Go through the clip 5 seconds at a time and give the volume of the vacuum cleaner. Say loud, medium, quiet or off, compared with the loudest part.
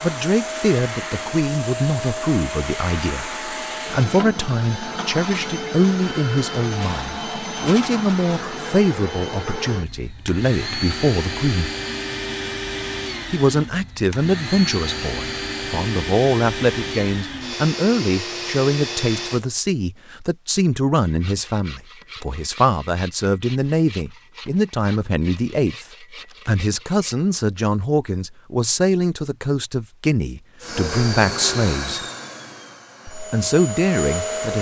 loud, loud, loud, loud, off, off, loud.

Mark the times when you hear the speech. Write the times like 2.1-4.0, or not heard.
0.0-11.7, 13.3-32.0, 33.1-34.5.